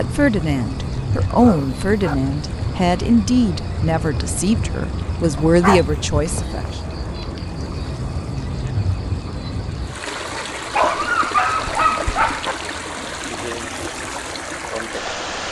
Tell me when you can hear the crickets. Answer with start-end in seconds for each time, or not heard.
0.0-15.4.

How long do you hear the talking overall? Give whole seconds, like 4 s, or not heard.
7 s.